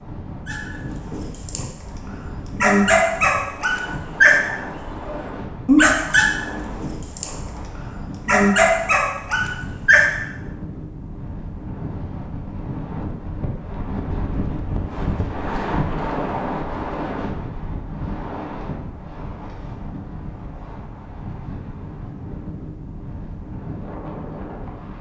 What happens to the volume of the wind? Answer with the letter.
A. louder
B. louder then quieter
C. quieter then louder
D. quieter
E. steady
B.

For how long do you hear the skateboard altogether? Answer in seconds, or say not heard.
not heard.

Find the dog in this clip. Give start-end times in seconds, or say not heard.
0.5-10.2.